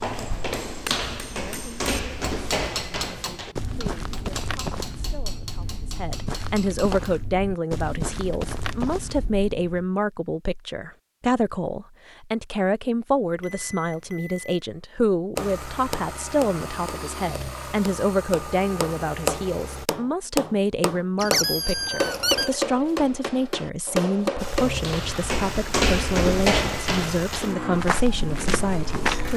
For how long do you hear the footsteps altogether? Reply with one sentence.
The footsteps can be heard for 14 seconds in total.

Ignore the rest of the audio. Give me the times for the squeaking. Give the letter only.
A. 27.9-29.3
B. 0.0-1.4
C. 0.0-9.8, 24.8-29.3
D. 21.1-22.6
D.